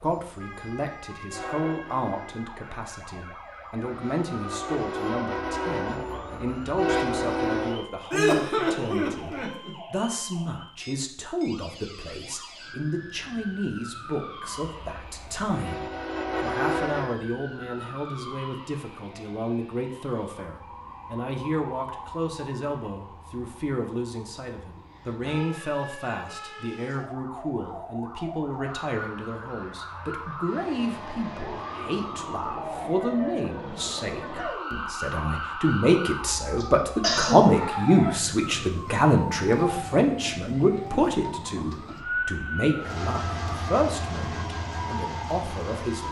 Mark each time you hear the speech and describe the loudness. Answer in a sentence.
The speech can be heard from 0.0 to 46.0 s, getting louder.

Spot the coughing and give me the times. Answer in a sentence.
The coughing can be heard from 8.1 to 9.7 s and from 36.6 to 37.4 s.